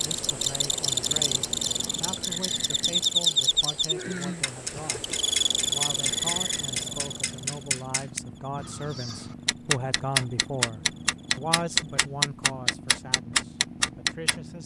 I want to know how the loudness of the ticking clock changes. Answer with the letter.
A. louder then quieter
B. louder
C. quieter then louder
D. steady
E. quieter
B.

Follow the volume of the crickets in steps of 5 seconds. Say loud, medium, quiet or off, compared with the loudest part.
loud, loud, quiet.